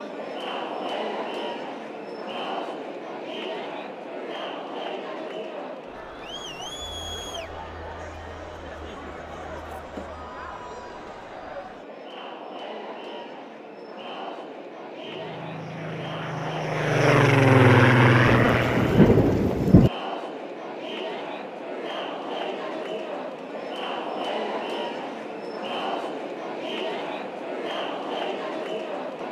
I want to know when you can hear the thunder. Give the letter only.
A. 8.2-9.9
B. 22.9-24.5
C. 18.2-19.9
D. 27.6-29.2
C.